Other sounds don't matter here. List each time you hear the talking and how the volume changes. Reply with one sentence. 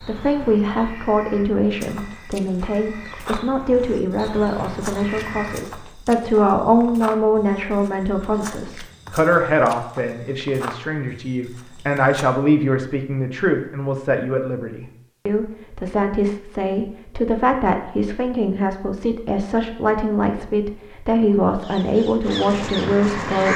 You can hear the talking from 0.0 to 23.5 s, at a steady volume.